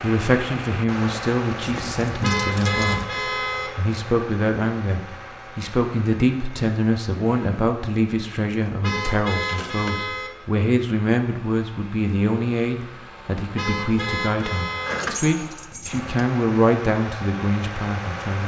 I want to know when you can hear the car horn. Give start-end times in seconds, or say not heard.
2.2-3.7, 8.8-10.3, 13.6-15.0.